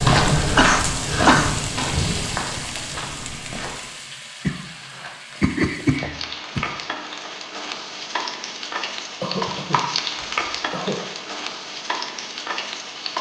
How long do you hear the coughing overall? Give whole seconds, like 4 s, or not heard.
4 s.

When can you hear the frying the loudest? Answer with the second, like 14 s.
10 s.